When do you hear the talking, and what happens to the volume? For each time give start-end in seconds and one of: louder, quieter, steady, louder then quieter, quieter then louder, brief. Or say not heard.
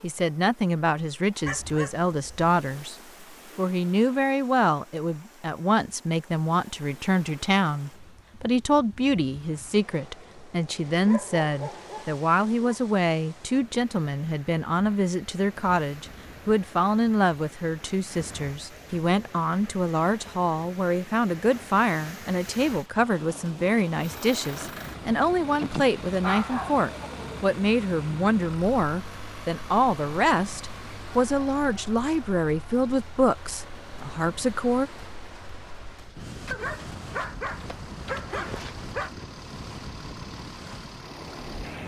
0.0-3.0 brief
3.5-34.9 steady.